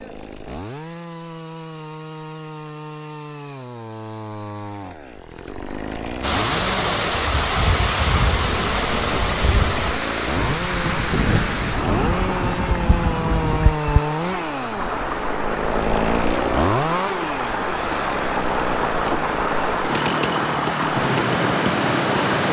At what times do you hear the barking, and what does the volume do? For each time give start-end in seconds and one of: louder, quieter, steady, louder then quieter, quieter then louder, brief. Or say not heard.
not heard.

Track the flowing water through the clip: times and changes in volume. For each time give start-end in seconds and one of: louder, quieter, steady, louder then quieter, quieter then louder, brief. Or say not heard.
6.2-22.4 quieter then louder.